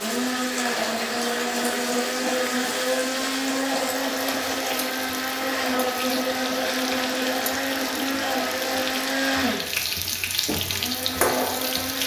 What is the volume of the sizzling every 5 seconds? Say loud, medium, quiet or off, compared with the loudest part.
medium, medium, loud.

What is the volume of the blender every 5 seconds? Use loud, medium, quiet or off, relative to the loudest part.
loud, loud, medium.